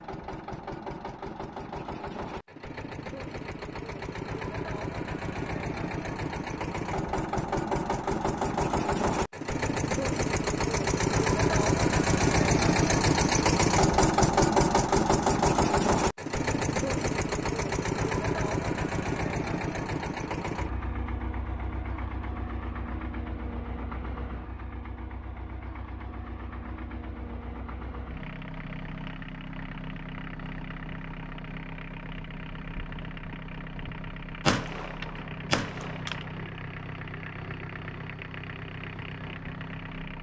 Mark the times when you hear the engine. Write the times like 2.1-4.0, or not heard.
0.0-40.1.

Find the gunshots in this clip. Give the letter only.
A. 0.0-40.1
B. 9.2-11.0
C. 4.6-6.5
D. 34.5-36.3
D.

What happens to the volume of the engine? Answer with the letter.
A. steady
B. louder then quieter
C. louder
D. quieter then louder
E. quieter
B.